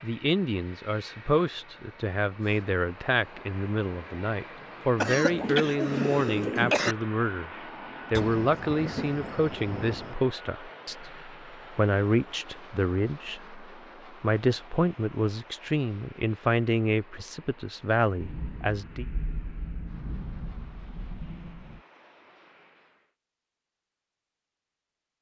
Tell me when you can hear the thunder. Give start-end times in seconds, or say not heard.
8.2-10.2, 18.1-21.8.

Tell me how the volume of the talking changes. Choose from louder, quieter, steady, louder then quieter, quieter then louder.
steady.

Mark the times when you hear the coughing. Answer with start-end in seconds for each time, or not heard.
5.0-7.0.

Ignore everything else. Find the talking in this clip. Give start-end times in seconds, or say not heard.
0.0-7.5, 8.1-19.1.